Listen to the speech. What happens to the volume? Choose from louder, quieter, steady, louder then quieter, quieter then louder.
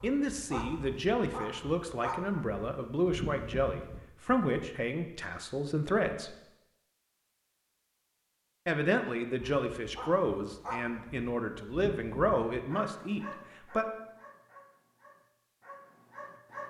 steady.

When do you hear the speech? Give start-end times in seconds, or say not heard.
0.0-6.3, 8.7-13.8.